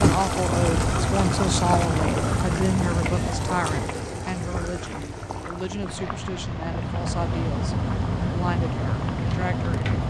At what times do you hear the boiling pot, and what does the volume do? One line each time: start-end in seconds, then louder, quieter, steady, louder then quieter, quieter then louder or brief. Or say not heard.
0.0-10.0 quieter.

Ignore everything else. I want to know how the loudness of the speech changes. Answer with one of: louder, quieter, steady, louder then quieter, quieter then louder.
quieter.